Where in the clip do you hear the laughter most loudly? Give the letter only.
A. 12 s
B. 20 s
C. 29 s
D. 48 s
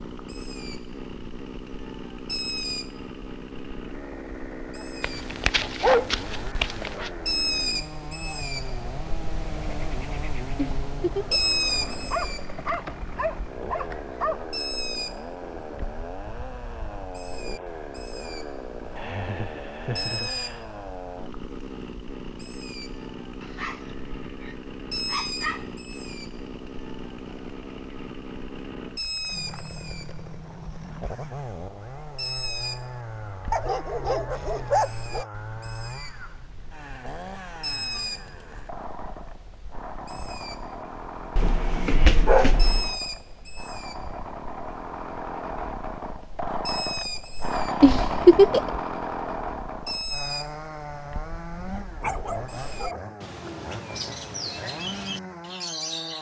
D.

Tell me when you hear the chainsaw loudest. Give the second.
48 s.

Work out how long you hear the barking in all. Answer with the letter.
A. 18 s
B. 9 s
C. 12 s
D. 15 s
C.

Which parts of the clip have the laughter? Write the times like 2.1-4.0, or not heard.
10.6-11.5, 18.9-20.6, 47.8-48.8.